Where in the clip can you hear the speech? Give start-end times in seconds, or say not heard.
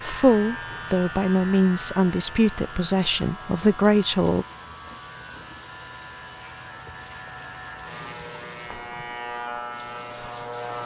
0.0-4.5.